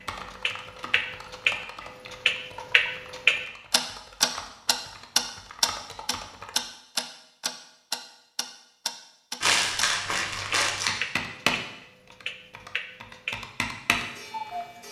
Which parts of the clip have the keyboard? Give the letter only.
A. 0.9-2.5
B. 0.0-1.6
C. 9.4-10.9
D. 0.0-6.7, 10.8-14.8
D.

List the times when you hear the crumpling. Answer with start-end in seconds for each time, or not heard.
9.4-10.9.